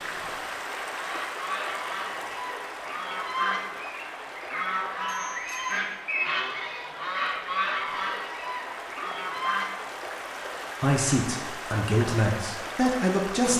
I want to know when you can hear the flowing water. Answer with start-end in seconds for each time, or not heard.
0.0-13.5.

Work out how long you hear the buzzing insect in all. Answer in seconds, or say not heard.
not heard.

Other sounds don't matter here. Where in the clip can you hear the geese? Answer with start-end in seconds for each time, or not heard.
0.9-9.7.